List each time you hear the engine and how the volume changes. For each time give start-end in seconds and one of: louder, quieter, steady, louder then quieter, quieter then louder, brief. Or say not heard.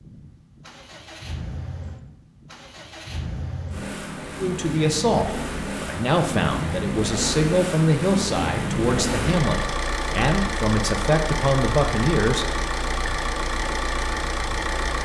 0.0-15.0 louder.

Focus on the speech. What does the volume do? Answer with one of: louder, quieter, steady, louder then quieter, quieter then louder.
steady.